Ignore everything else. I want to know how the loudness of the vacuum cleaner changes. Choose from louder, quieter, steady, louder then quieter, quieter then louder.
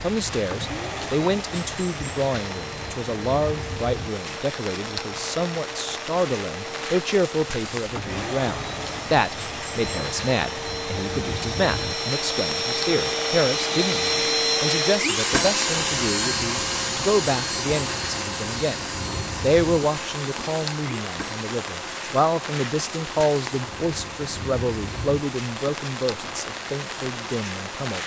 louder then quieter.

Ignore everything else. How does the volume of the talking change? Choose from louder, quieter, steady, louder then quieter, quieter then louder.
steady.